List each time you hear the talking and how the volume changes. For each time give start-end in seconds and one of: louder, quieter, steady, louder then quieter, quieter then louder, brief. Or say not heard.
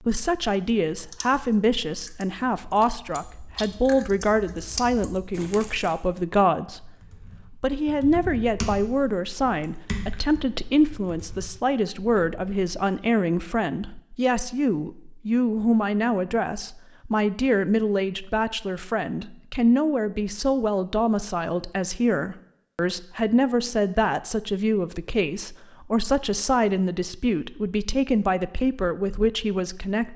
0.1-6.9 steady
7.5-30.1 steady.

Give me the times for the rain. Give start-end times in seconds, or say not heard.
not heard.